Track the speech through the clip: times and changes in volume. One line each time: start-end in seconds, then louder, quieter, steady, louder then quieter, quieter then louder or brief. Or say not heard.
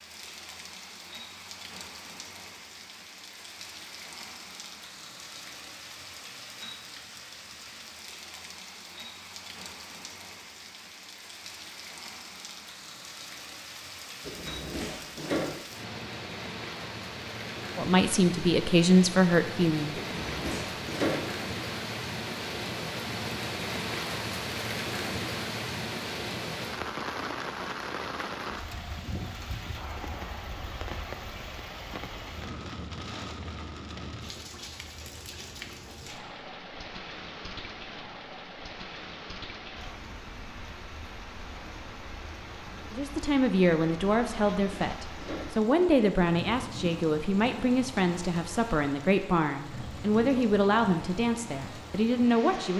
17.8-19.9 brief
42.9-52.7 steady.